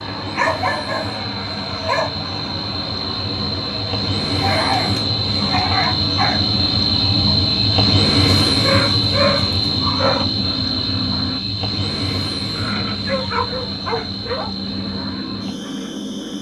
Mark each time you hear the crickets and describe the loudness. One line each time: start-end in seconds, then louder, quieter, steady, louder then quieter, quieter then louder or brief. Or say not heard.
0.0-16.3 louder then quieter.